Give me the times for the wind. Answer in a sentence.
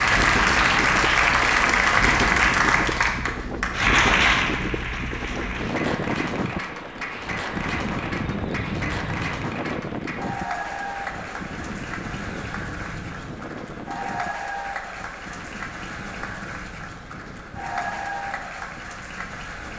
You can hear the wind from 0.0 to 19.7 s.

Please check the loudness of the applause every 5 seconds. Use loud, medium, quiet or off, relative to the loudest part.
loud, quiet, quiet, quiet.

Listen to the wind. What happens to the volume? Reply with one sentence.
The loudness of the wind goes down.